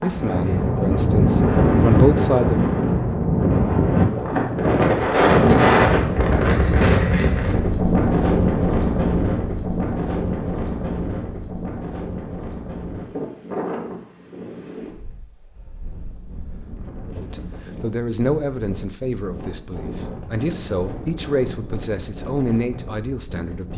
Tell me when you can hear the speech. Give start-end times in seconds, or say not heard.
0.0-2.7, 17.1-23.7.